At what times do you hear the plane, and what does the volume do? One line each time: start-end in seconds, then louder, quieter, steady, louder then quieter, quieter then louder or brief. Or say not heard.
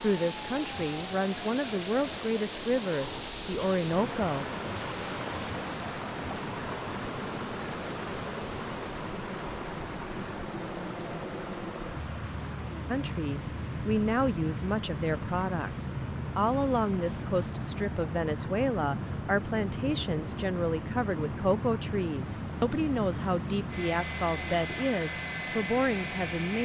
0.1-26.6 louder.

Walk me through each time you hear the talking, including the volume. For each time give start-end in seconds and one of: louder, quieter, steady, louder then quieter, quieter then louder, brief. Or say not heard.
0.0-4.5 louder
12.8-26.6 steady.